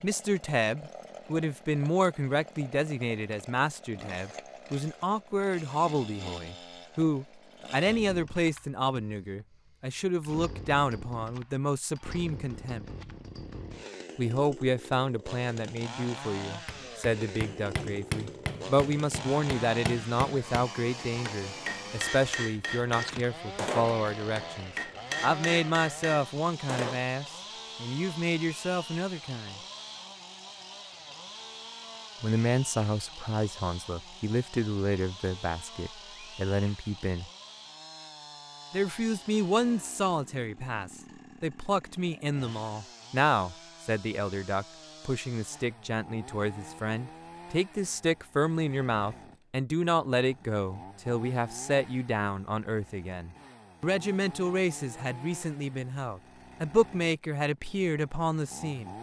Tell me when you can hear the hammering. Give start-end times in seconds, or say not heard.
16.6-27.1.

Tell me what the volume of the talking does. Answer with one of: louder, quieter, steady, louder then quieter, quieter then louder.
steady.